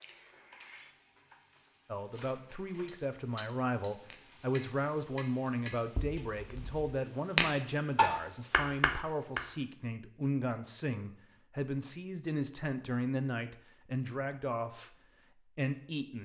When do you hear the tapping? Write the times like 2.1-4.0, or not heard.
4.1-9.4.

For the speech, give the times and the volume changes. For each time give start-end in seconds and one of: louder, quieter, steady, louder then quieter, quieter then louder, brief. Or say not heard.
1.9-14.9 steady
15.6-16.1 brief.